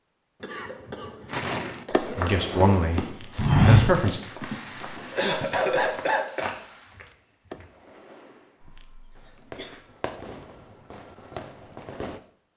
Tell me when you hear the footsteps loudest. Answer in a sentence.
The volume of the footsteps peaks at 4 seconds.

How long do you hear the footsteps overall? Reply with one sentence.
You can hear the footsteps for 6 seconds altogether.